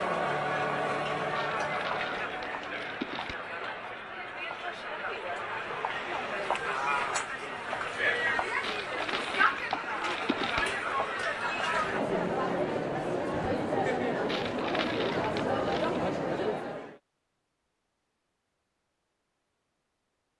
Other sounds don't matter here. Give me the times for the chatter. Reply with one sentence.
The chatter can be heard from 0.0 to 16.9 s.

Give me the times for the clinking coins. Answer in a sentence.
You can hear the clinking coins from 1.4 to 3.4 s, from 8.6 to 10.7 s and from 14.2 to 16.0 s.